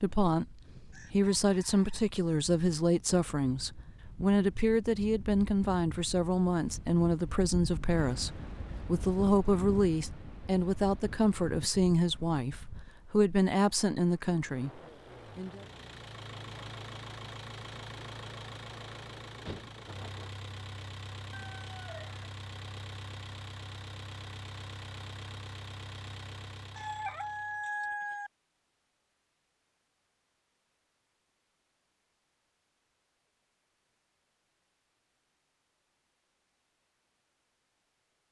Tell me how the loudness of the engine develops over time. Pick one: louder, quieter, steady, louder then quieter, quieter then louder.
steady.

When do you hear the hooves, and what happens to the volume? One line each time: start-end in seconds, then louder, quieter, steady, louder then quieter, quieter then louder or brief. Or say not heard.
not heard.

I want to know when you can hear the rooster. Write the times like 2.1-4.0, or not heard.
0.9-2.5, 21.3-22.2, 26.8-28.3.